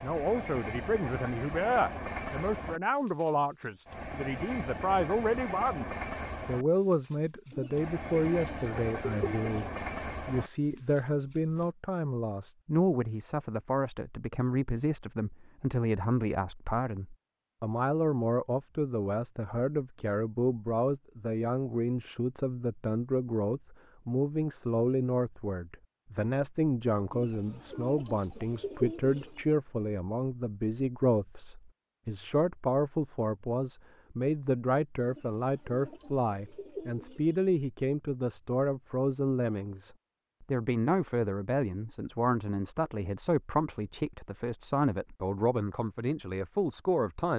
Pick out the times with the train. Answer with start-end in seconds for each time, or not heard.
0.0-11.7.